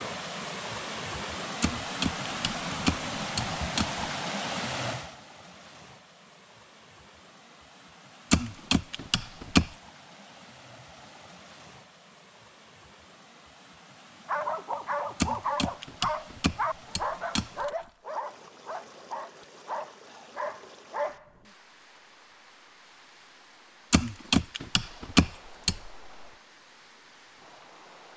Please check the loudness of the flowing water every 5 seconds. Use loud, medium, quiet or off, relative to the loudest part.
loud, quiet, quiet, quiet, quiet, quiet.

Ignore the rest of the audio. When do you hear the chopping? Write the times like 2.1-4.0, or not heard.
1.6-4.0, 8.3-9.7, 15.2-17.7, 23.9-25.8.